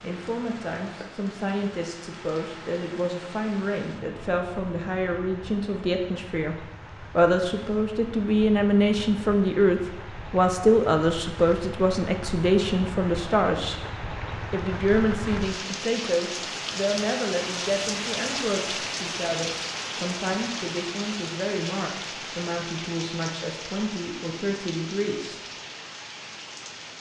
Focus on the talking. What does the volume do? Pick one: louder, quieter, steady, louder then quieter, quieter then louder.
louder then quieter.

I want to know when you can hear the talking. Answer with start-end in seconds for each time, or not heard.
0.0-13.8, 14.5-25.4.